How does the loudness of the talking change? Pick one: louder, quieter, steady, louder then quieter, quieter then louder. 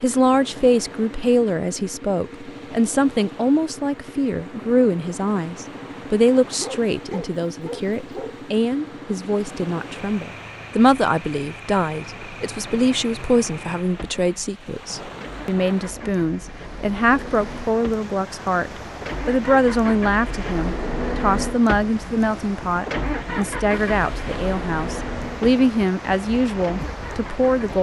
steady.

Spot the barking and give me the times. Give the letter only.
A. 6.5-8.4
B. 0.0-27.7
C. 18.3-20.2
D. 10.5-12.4
A.